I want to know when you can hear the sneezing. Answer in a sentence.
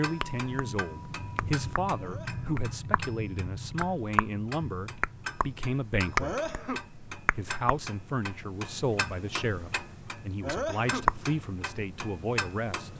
You can hear the sneezing from 1.9 to 2.6 s, from 6.2 to 6.8 s and from 10.4 to 11.1 s.